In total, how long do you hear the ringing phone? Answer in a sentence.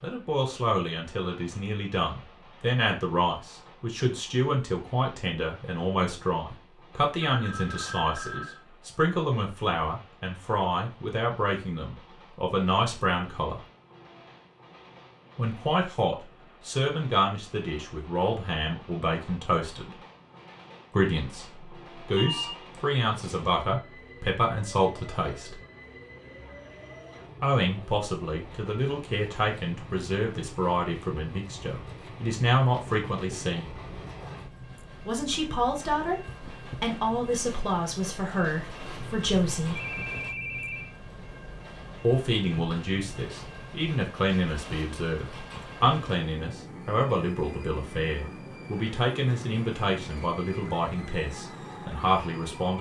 You can hear the ringing phone for 4 seconds altogether.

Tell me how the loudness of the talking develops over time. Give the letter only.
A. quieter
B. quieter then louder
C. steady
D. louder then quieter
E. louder
C.